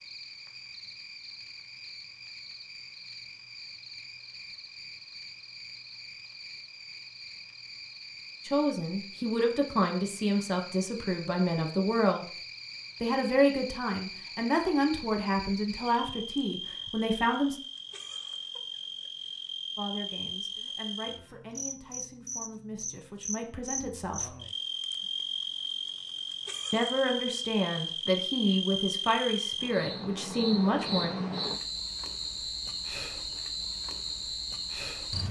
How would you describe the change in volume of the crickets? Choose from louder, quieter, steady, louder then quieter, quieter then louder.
louder.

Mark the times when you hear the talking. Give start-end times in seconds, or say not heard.
8.4-12.2, 13.0-17.6, 19.8-24.4, 26.7-31.1.